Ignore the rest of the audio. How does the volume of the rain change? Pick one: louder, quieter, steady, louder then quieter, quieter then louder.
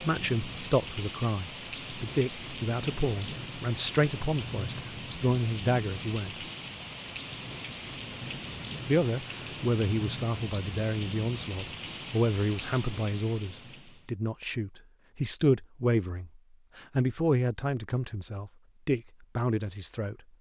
steady.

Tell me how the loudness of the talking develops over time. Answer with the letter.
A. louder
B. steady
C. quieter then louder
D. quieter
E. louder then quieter
B.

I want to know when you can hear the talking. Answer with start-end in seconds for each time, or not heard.
0.0-6.4, 8.8-20.1.